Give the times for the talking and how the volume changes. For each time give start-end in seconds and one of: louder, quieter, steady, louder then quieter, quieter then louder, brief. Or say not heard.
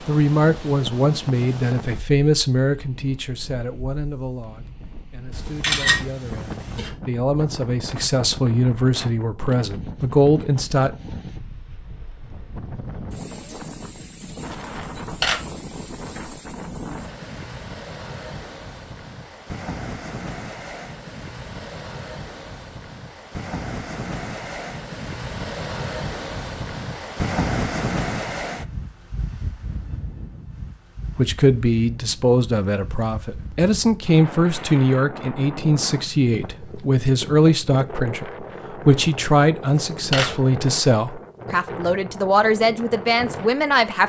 0.1-10.9 quieter then louder
31.1-44.0 steady.